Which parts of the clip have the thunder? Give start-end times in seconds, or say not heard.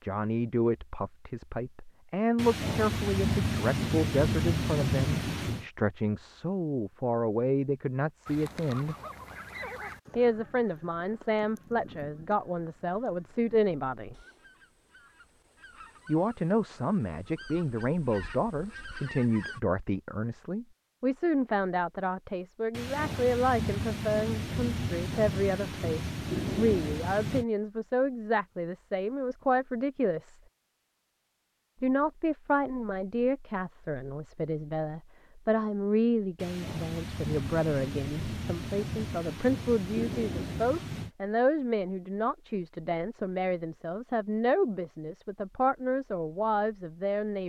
2.4-5.7, 22.7-27.4, 36.4-41.1.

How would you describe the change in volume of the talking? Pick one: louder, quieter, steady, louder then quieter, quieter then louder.
steady.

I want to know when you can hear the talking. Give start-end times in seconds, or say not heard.
0.0-8.9, 10.2-14.2, 16.1-30.4, 31.8-47.4.